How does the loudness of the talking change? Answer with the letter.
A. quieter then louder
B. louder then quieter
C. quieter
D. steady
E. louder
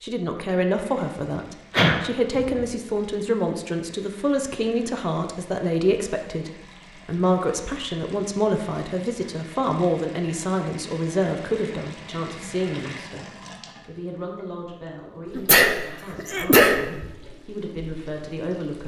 C.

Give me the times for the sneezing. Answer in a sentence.
You can hear the sneezing from 1.7 to 2.6 s and from 15.3 to 17.1 s.